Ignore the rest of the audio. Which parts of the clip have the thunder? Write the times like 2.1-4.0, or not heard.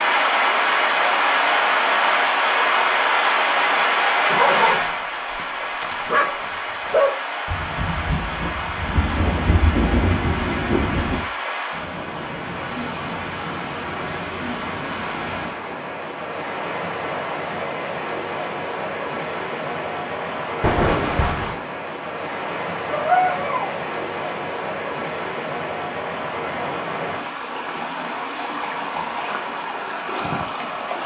7.5-11.2, 20.6-21.6.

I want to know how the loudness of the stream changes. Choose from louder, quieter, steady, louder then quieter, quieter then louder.
quieter.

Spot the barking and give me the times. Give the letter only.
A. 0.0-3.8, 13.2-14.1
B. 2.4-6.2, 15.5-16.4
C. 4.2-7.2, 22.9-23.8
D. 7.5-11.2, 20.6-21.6
C.